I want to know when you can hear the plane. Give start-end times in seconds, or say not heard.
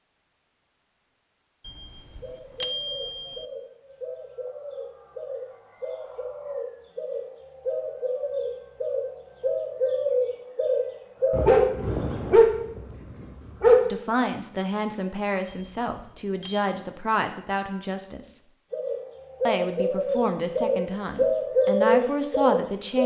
not heard.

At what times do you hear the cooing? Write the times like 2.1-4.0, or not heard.
2.2-11.9, 18.7-23.0.